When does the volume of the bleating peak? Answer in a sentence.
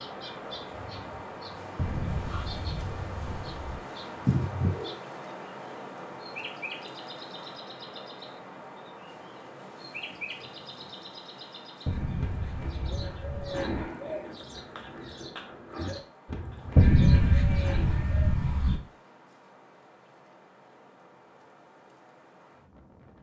The volume of the bleating peaks at 17 seconds.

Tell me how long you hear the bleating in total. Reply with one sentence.
The bleating can be heard for 6 seconds in total.